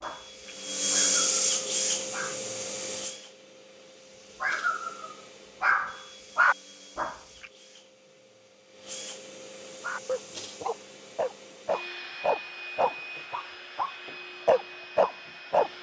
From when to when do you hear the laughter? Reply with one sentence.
The laughter can't be heard in this clip.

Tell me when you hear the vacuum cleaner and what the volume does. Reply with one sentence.
You can hear the vacuum cleaner from 0.0 to 15.7 s, getting quieter then louder.